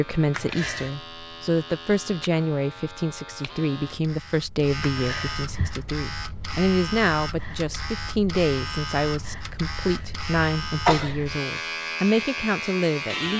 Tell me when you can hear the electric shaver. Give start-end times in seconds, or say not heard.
0.0-13.3.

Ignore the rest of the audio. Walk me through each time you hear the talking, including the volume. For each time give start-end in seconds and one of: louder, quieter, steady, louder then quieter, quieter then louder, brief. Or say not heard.
0.0-13.3 steady.